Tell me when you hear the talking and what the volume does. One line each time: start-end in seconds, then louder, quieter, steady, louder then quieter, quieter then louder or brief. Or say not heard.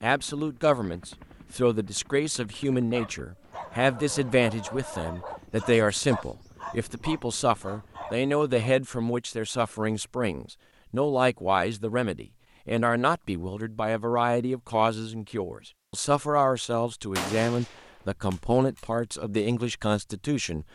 0.0-20.6 steady.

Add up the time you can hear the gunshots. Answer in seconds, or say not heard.
2 s.